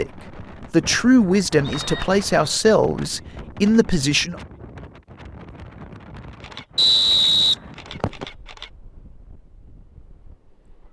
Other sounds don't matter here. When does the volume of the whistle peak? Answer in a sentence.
The loudest moment of the whistle is at 7 seconds.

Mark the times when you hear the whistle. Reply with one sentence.
You can hear the whistle from 1.6 to 2.6 s and from 6.8 to 8.2 s.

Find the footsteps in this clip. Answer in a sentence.
The footsteps can't be heard in this clip.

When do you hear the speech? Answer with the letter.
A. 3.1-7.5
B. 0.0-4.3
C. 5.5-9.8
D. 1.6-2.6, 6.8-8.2
B.